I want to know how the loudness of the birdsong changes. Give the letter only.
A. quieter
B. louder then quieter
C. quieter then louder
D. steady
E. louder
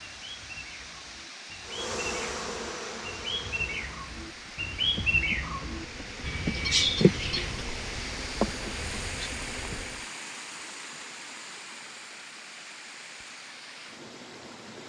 E.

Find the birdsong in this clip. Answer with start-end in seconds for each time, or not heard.
0.0-7.7.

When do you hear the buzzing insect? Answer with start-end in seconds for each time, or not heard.
1.6-10.0.